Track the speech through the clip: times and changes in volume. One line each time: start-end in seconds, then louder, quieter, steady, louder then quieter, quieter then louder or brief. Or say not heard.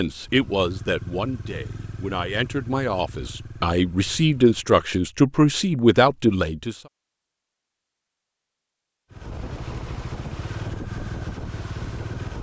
0.0-6.8 louder.